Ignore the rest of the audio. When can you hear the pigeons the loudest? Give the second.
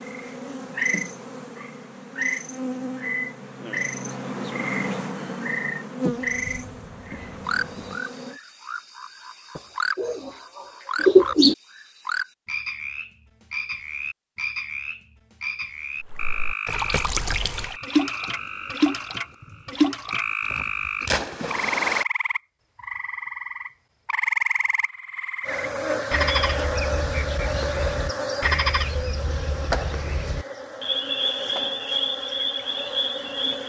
11 s.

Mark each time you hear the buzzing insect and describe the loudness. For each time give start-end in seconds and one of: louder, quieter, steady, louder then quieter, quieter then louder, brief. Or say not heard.
0.0-8.4 louder then quieter
25.4-33.6 quieter.